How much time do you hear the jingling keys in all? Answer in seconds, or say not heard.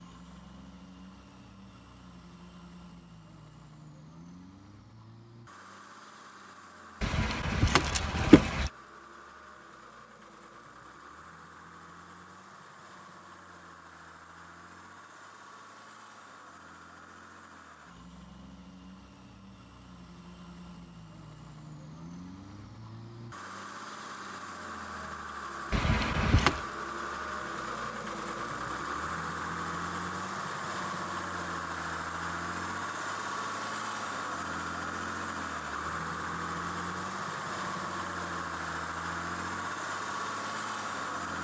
3 s.